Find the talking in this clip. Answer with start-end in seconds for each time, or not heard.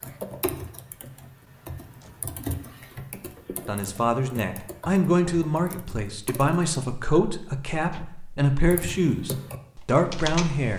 3.6-10.7.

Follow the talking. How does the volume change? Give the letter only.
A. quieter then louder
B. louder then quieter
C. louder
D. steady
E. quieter
D.